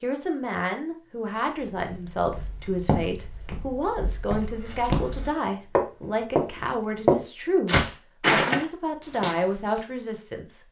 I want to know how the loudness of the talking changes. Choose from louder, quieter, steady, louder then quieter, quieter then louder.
steady.